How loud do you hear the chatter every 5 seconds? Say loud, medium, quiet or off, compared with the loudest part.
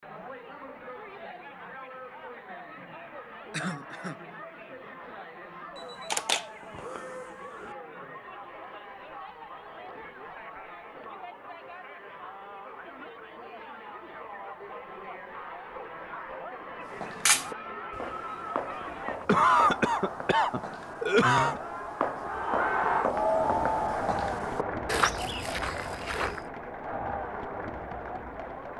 quiet, quiet, quiet, medium, loud, medium.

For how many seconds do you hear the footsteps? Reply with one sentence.
You can hear the footsteps for 10 seconds altogether.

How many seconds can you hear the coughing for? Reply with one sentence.
The coughing can be heard for 3 seconds in total.